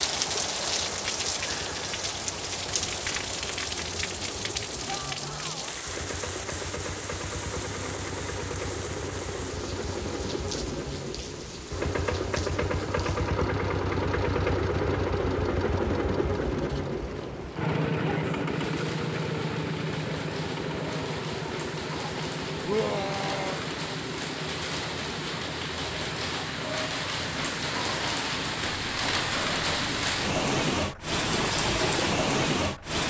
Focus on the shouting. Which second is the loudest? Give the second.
23 s.